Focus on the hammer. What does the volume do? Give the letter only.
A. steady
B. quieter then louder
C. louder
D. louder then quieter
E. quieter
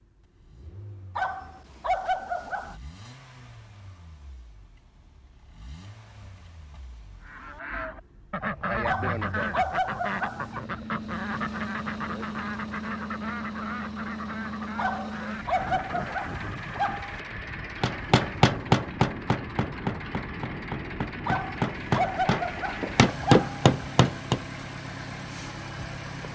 B.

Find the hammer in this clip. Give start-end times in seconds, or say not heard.
17.8-24.4.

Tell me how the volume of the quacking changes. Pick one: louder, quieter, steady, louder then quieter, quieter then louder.
quieter.